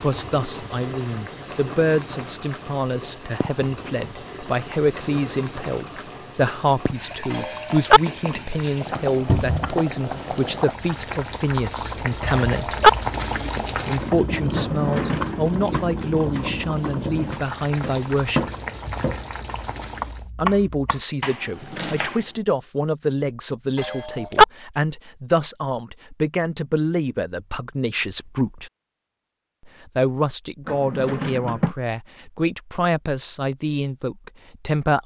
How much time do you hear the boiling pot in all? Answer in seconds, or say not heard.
20 s.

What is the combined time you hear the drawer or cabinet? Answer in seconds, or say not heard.
2 s.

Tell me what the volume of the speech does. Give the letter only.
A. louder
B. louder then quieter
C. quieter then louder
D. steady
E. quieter
D.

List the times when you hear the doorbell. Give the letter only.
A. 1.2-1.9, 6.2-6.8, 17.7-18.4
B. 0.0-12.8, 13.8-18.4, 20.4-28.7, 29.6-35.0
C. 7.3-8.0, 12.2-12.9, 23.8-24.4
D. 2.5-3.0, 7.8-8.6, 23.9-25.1
C.